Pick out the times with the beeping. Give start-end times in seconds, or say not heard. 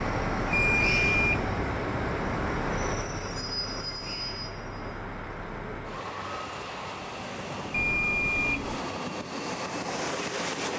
0.5-1.6, 7.7-8.8.